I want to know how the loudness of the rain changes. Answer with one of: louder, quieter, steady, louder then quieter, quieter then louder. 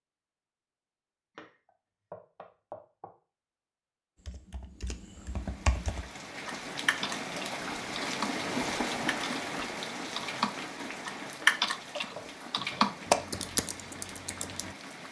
louder then quieter.